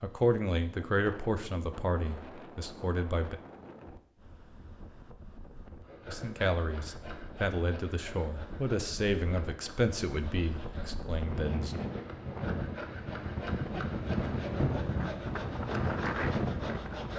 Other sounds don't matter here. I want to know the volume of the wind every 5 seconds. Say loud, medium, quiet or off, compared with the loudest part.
quiet, quiet, loud, loud.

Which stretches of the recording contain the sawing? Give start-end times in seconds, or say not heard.
5.8-17.1.